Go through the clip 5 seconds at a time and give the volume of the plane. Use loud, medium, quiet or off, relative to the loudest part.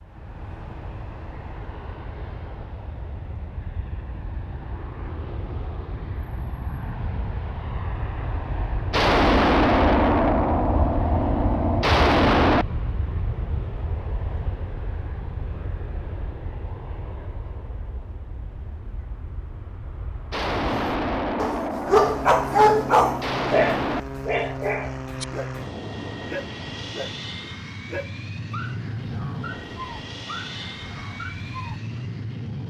medium, loud, loud, medium, loud, loud, loud.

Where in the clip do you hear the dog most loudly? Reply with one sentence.
The loudest moment of the dog is at 23 seconds.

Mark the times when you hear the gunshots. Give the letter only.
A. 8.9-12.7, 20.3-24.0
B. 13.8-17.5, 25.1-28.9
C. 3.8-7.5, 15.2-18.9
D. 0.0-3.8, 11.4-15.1
A.